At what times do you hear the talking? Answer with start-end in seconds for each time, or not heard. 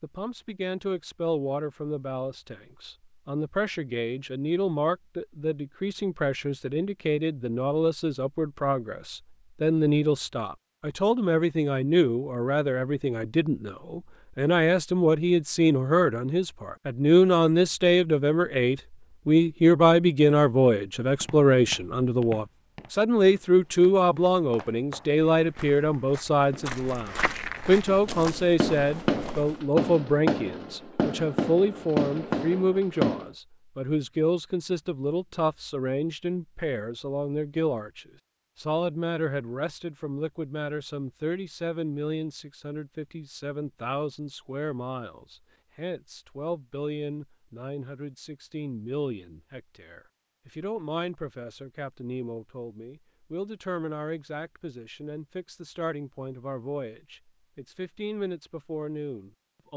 0.0-59.7.